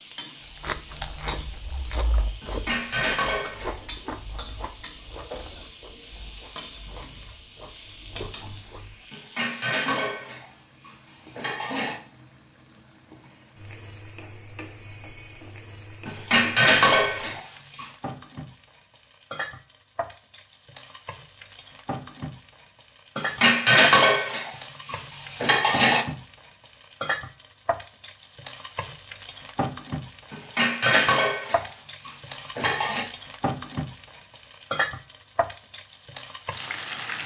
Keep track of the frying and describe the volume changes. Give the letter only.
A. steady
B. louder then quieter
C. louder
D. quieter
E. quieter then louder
C.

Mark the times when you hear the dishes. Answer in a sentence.
The dishes can be heard from 2.4 to 3.9 s, from 9.1 to 12.0 s, from 16.1 to 17.9 s, from 23.1 to 26.1 s and from 30.3 to 33.0 s.